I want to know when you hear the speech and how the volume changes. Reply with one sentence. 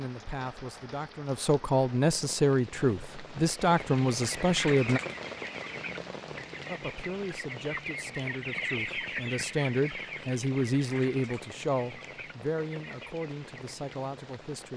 You can hear the speech from 0.0 to 5.0 s, getting louder; and from 6.7 to 14.7 s, getting louder then quieter.